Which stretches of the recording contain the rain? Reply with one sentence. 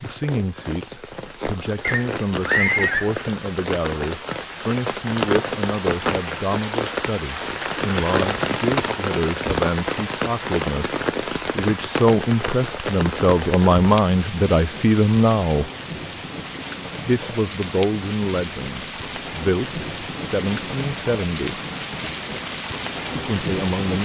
The rain can be heard from 0.0 to 24.0 s.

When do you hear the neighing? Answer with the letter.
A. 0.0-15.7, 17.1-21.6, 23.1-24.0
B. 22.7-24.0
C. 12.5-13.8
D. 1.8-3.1
D.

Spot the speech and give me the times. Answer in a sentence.
You can hear the speech from 0.0 to 15.7 s, from 17.1 to 21.6 s and from 23.1 to 24.0 s.